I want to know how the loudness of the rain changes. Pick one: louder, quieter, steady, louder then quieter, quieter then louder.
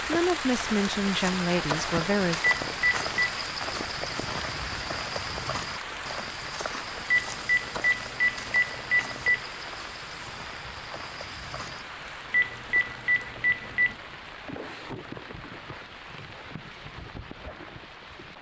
quieter.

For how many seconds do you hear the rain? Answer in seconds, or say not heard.
18 s.